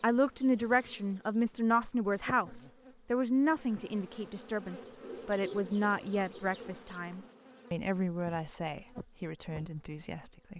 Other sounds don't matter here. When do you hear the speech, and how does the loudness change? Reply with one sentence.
You can hear the speech from 0.0 to 10.5 s, getting quieter.